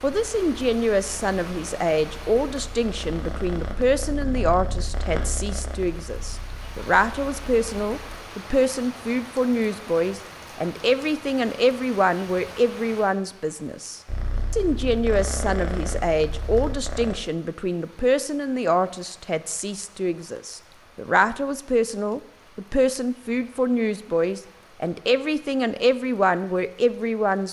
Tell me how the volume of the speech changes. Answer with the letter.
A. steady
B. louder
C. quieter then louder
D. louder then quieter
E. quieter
A.